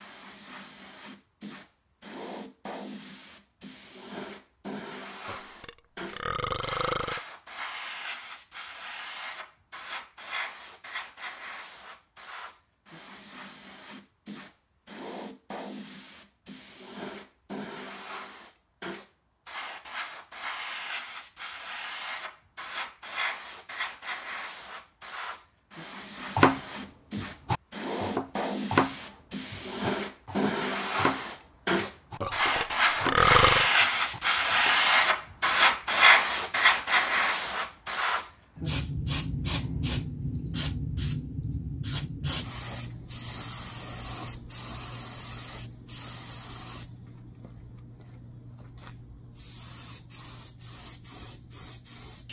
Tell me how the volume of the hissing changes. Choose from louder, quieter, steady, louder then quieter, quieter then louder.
louder then quieter.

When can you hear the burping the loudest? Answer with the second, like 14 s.
33 s.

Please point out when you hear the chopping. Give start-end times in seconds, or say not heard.
26.4-34.8.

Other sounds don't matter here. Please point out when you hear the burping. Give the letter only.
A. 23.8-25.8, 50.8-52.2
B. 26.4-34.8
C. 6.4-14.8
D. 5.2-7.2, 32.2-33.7
D.